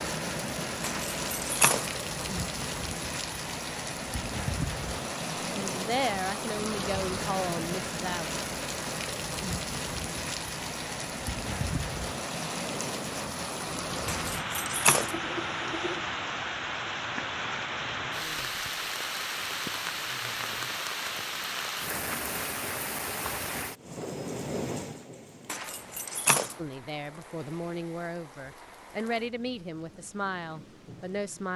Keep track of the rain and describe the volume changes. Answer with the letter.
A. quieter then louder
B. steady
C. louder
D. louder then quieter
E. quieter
E.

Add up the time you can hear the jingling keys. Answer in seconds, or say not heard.
3 s.